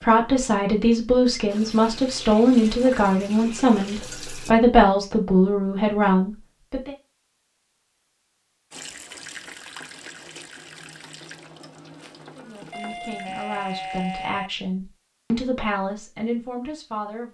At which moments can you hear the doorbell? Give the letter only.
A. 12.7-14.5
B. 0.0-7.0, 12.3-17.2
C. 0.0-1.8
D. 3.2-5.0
A.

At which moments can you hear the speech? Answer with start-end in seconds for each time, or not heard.
0.0-7.0, 12.3-17.2.